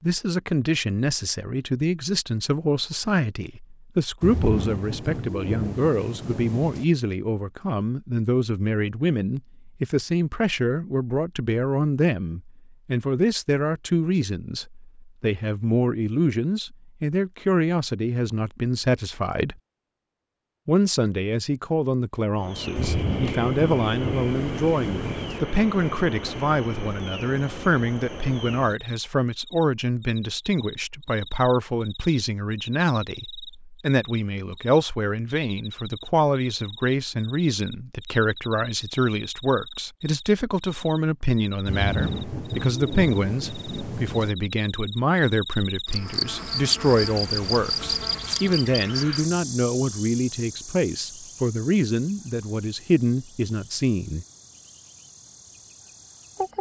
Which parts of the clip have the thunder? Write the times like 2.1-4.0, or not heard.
4.2-6.8, 22.8-25.4, 41.6-44.3.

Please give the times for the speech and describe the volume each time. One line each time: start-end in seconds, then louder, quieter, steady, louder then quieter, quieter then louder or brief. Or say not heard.
0.0-19.6 steady
20.6-54.2 steady.